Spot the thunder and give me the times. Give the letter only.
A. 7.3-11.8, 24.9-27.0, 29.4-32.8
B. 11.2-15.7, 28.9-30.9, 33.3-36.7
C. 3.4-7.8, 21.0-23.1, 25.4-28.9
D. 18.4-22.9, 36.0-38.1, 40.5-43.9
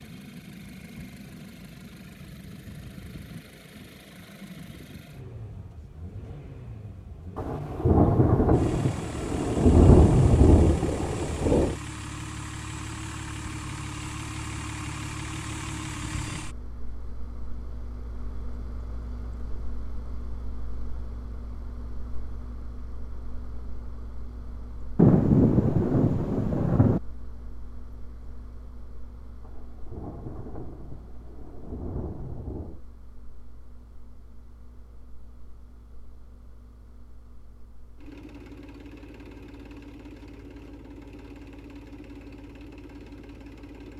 A.